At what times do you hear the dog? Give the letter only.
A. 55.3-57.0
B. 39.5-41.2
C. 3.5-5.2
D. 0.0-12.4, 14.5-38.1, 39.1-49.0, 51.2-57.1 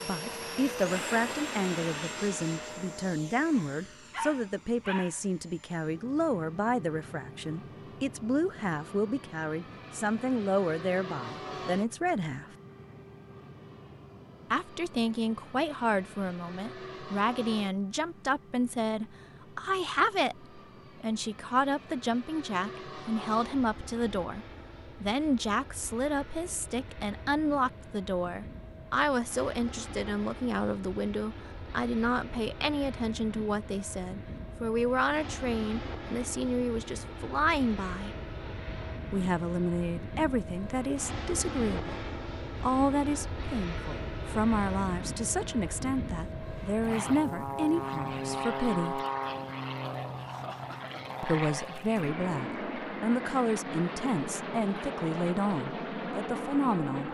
C.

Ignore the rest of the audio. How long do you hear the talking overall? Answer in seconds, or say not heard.
52 s.